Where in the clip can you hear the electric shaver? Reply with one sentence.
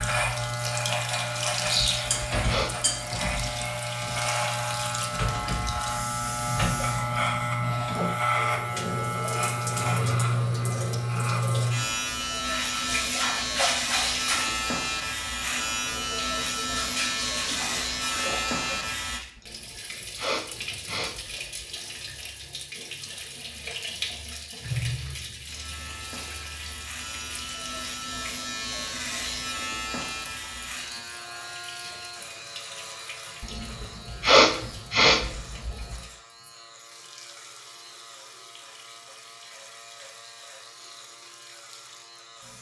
The electric shaver can be heard from 0.0 to 19.2 s and from 25.4 to 42.5 s.